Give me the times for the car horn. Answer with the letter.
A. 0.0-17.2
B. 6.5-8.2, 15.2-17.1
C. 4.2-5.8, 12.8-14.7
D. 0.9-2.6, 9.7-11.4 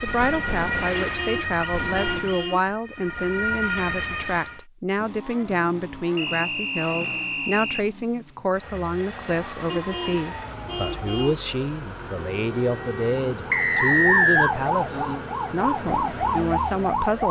D.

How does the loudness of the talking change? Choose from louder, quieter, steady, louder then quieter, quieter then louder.
steady.